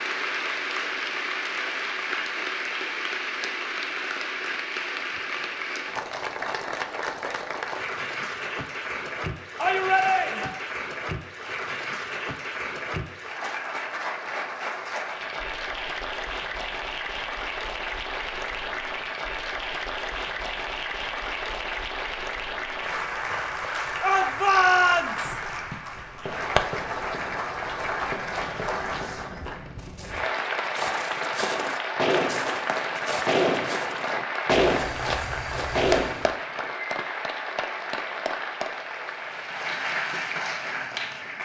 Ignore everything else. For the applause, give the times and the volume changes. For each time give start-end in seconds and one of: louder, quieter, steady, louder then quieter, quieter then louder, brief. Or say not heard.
0.0-41.4 steady.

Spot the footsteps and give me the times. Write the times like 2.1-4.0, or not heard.
25.1-36.4.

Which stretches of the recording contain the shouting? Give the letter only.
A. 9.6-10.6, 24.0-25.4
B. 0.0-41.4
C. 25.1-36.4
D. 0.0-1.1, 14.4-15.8
A.